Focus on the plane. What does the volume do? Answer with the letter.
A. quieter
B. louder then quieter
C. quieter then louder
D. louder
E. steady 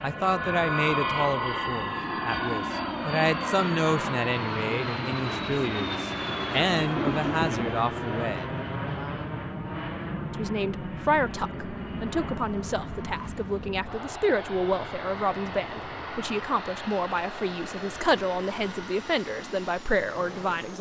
A.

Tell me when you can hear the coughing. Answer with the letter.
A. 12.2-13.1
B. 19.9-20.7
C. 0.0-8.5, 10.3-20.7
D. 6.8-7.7
D.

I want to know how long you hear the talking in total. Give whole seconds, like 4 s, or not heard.
19 s.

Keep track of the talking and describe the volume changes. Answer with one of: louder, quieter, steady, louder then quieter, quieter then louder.
steady.